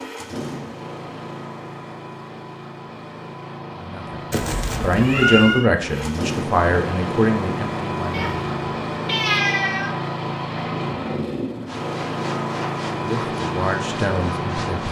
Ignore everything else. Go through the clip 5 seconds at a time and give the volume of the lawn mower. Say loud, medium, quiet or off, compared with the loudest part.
medium, loud, loud.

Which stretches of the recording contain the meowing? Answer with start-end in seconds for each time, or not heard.
4.3-5.7, 8.1-9.9.